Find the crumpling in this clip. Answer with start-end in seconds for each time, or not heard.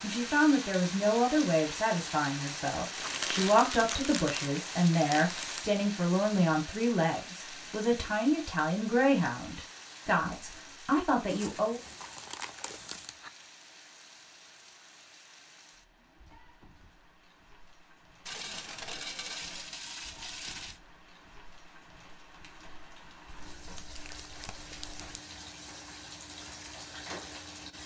3.0-5.7, 11.2-13.3, 23.3-25.1.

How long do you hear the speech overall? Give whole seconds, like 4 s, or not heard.
12 s.